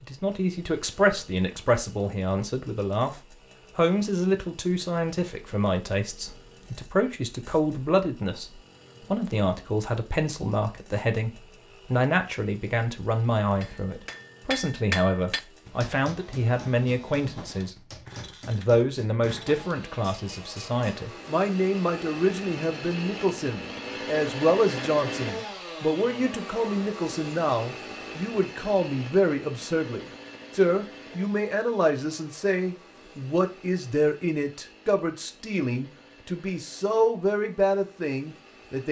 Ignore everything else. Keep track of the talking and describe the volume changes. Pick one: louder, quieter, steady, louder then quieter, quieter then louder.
steady.